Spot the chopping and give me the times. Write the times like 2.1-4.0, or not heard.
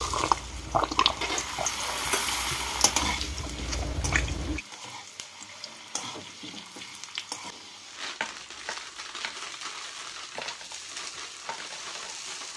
not heard.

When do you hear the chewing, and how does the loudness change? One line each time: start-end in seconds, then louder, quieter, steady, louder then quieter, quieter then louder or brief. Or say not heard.
0.0-4.6 quieter then louder.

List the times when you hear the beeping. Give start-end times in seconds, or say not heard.
not heard.